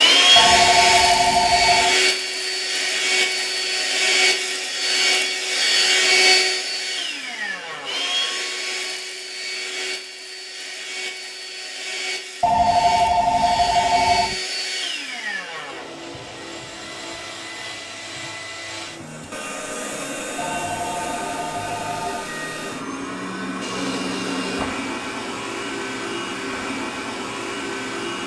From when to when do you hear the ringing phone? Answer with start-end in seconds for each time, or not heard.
0.3-1.9, 12.4-14.3, 20.4-22.3.